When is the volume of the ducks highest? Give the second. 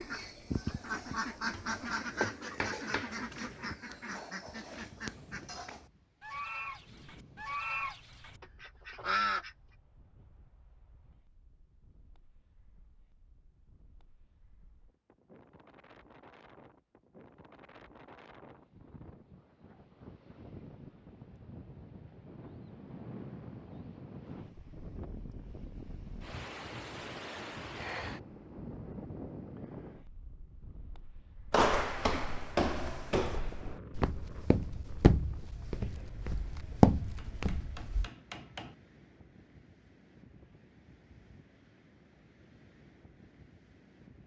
9 s.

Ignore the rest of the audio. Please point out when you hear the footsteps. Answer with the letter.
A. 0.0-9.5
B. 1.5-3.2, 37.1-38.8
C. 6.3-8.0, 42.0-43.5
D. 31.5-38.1
D.